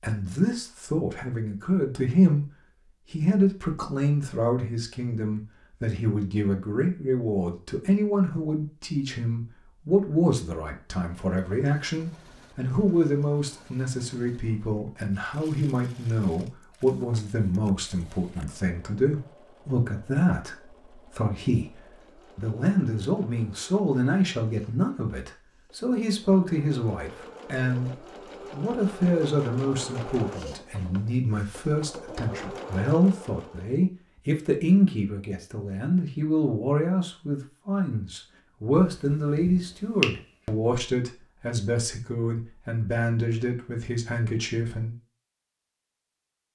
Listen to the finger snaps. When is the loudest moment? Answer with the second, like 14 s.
40 s.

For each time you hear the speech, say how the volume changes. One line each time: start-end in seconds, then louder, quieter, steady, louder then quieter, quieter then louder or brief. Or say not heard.
0.0-2.5 brief
3.1-45.0 steady.